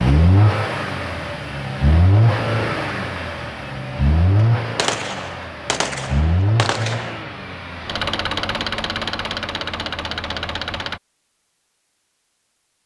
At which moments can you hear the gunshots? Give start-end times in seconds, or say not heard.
4.8-7.2.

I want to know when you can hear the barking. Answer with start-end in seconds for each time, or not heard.
not heard.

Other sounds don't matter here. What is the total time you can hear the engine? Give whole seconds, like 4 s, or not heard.
11 s.